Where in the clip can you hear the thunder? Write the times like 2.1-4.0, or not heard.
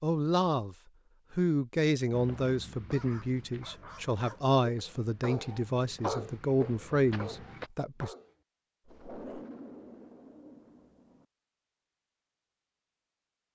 8.8-11.2.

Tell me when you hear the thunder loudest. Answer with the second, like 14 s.
9 s.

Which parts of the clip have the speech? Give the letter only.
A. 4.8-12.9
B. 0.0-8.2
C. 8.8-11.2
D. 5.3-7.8
B.